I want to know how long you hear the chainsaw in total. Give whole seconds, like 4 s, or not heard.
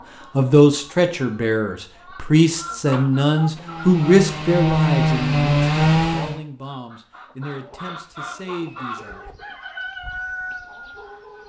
3 s.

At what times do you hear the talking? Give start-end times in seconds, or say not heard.
0.3-9.3.